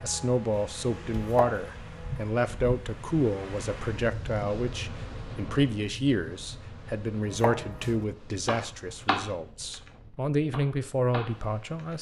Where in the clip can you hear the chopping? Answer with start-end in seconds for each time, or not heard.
0.0-2.3, 7.2-11.3.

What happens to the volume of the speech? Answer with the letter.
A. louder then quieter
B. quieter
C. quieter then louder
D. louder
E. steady
E.